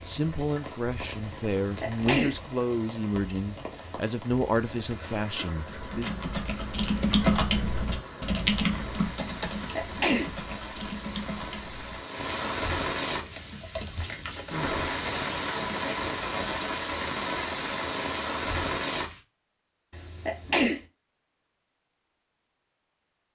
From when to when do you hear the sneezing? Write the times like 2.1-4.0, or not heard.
1.6-2.4, 9.6-10.3, 19.9-20.8.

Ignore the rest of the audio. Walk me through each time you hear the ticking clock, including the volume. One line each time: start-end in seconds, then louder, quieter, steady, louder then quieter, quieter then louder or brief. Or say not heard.
not heard.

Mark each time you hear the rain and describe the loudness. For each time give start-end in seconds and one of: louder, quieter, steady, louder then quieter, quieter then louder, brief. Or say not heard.
0.0-19.2 louder.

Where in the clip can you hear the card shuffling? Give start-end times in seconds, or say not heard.
13.9-14.8.